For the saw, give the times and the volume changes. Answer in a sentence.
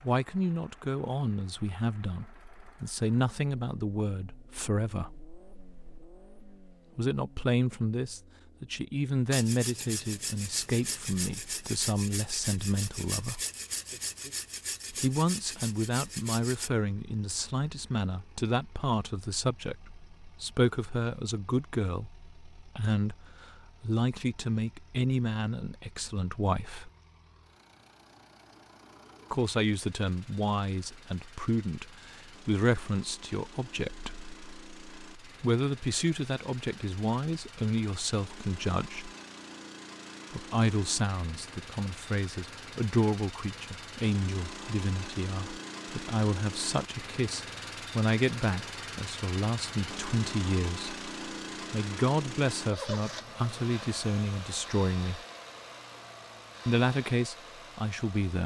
You can hear the saw from 9.3 to 16.7 s, at a steady volume.